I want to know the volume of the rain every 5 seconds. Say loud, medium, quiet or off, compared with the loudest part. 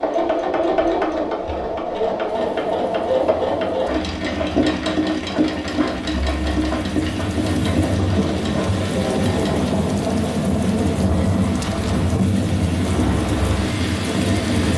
quiet, loud, loud.